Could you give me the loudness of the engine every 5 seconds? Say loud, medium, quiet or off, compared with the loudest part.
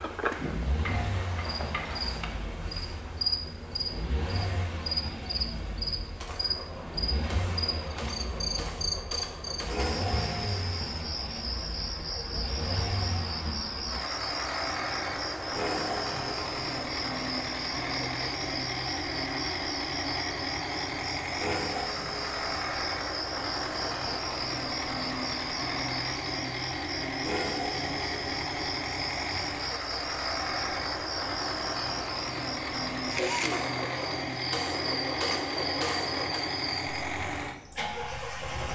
medium, medium, loud, loud, loud, loud, loud, loud.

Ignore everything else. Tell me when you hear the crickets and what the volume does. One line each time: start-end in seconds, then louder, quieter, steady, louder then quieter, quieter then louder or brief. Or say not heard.
0.0-38.5 steady.